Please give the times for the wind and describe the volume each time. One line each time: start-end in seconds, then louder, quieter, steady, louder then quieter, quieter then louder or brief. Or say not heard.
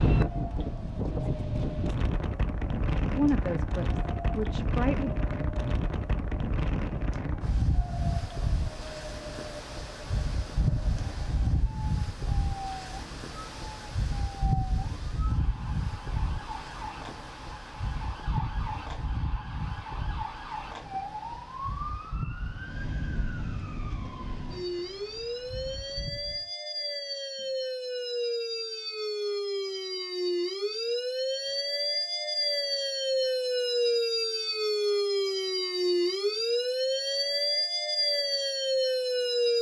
0.0-26.5 quieter.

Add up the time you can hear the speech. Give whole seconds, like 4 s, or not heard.
2 s.